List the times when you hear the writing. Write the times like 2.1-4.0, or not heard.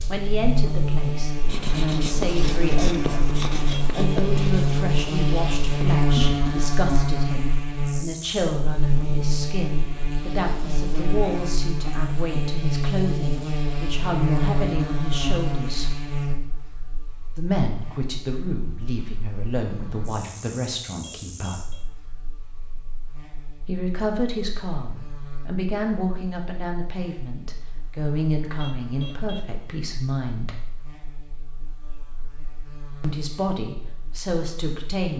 1.4-6.4.